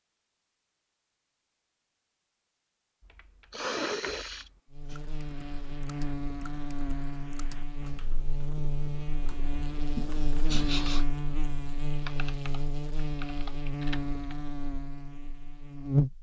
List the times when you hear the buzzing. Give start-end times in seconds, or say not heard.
4.7-16.1.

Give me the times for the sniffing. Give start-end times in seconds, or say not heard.
3.5-5.0, 9.9-11.1.